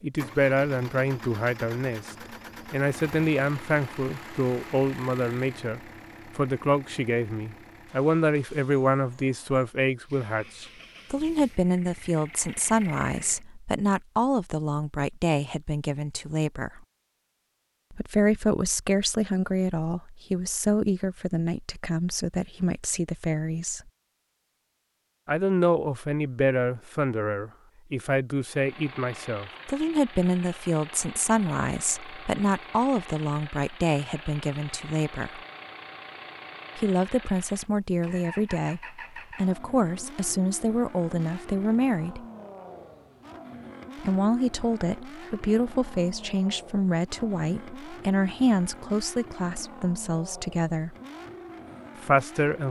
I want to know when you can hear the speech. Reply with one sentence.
You can hear the speech from 0.0 to 16.8 s, from 17.9 to 23.8 s, from 25.2 to 35.4 s, from 36.8 to 42.2 s, from 44.0 to 51.0 s and from 52.0 to 52.6 s.